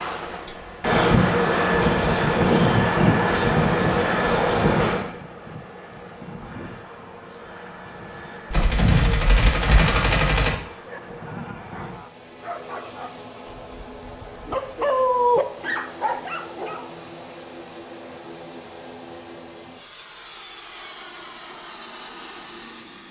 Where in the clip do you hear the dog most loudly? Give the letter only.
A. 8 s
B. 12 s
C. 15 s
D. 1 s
C.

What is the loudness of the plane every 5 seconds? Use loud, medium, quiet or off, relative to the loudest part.
loud, quiet, quiet, quiet, quiet.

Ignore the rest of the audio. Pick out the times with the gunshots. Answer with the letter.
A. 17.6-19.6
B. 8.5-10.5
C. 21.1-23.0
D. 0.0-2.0
B.